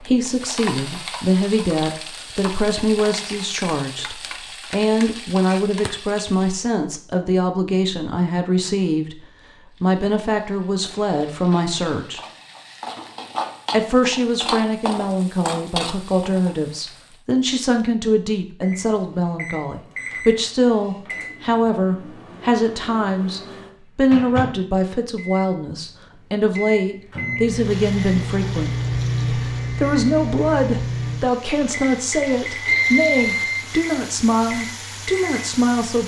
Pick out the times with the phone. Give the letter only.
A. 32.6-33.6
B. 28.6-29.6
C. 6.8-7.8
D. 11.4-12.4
A.